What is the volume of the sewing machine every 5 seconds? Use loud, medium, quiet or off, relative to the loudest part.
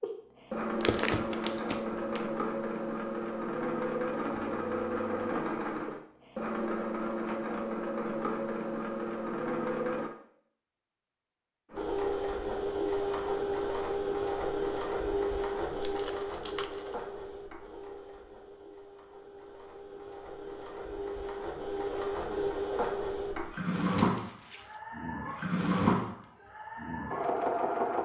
loud, loud, loud, medium, loud, loud.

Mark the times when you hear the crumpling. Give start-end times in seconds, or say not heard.
0.8-2.2, 15.7-16.9, 23.9-24.8.